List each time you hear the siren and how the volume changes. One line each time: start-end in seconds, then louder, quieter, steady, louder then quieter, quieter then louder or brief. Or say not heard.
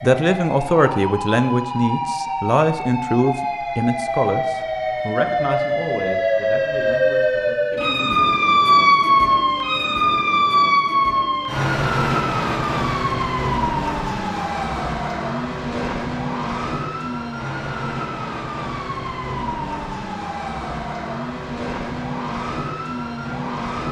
0.0-23.8 louder then quieter.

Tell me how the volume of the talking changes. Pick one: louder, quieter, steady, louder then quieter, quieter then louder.
quieter.